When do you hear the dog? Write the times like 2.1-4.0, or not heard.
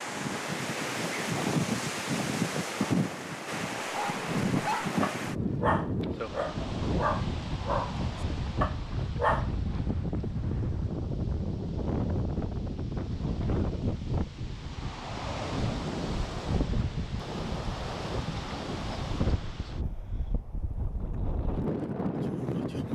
3.9-9.5.